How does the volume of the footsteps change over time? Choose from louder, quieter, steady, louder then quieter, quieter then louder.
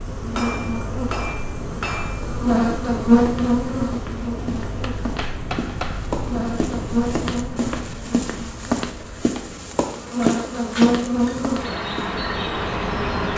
louder.